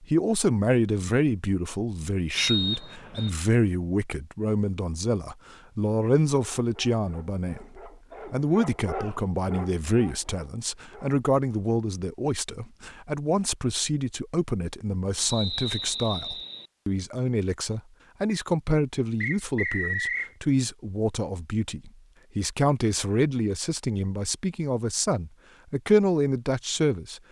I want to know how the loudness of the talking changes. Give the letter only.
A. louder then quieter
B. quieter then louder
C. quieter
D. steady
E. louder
D.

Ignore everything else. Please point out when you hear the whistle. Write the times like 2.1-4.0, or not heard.
2.4-3.3, 15.2-16.7, 19.2-20.3.